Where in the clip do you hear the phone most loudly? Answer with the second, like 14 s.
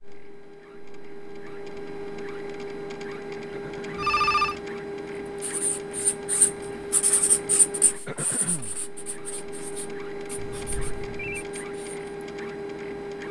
4 s.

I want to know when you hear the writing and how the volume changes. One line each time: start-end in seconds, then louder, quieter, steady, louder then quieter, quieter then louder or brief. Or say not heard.
5.4-12.1 quieter.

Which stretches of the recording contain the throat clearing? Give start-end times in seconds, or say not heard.
3.5-4.0, 8.1-8.8.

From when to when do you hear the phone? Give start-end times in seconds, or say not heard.
4.0-4.6, 10.3-11.4.